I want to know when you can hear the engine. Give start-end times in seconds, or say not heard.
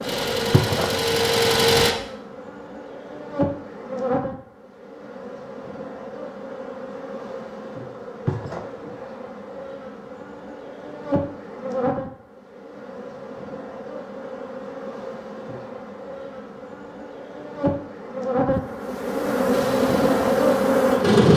0.0-1.9, 19.5-21.3.